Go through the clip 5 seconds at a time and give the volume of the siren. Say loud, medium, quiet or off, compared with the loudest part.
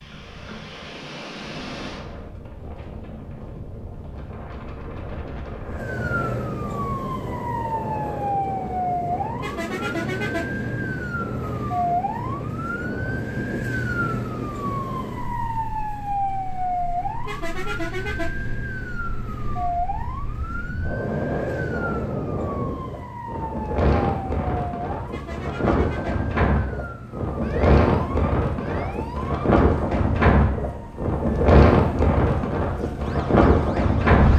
off, loud, loud, loud, medium, medium, quiet.